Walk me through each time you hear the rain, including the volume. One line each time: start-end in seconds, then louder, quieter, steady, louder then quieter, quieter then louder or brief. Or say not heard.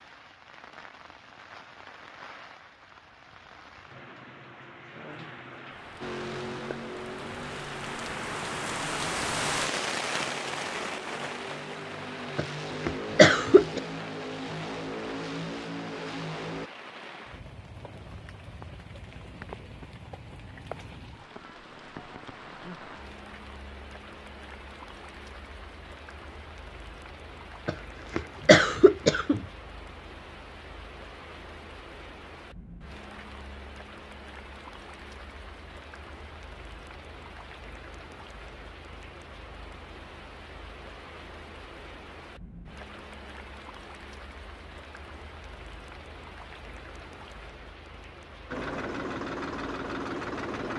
0.0-50.7 quieter.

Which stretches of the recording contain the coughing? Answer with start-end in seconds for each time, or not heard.
12.3-13.8, 27.6-29.4.